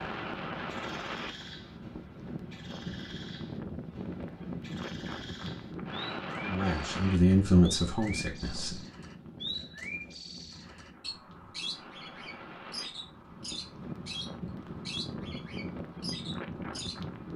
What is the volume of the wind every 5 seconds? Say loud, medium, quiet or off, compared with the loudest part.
loud, loud, medium, loud.